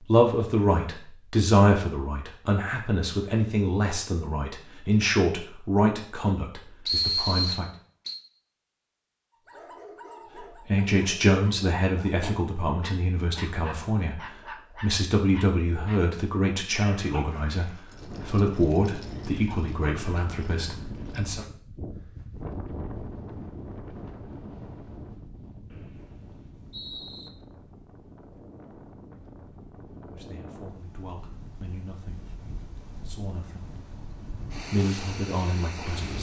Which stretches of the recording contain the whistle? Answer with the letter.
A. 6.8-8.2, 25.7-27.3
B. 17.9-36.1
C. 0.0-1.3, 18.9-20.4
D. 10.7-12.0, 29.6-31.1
A.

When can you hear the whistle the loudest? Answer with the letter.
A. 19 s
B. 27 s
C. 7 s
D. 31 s
C.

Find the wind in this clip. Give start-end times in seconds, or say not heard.
17.9-36.1.